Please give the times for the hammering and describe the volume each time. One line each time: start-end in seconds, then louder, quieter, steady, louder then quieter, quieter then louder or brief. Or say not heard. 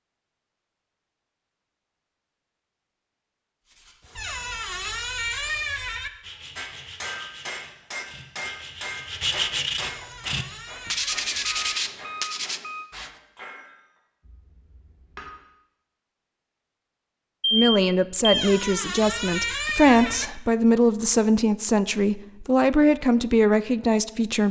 6.5-15.3 quieter.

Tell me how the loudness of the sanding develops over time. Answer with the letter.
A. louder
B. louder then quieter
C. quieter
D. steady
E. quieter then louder
A.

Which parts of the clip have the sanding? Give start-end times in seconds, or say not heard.
3.6-13.1.